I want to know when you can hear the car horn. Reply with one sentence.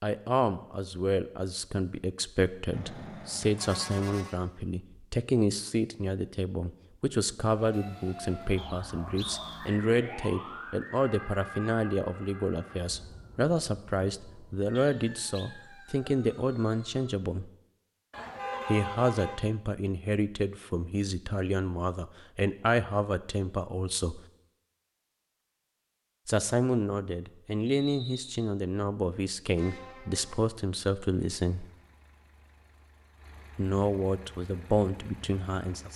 You can hear the car horn from 2.7 to 4.4 s, from 18.1 to 19.4 s and from 29.6 to 30.4 s.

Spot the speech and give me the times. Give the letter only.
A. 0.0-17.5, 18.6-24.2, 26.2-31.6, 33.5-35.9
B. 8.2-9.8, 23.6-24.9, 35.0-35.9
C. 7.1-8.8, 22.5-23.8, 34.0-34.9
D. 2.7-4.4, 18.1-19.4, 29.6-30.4
A.